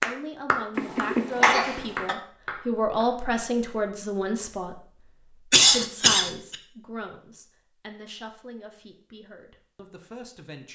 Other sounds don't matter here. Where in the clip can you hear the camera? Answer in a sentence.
You can't hear the camera here.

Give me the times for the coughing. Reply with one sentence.
The coughing can be heard from 0.8 to 2.1 s and from 5.5 to 6.5 s.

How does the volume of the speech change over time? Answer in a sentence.
The loudness of the speech goes up, then down.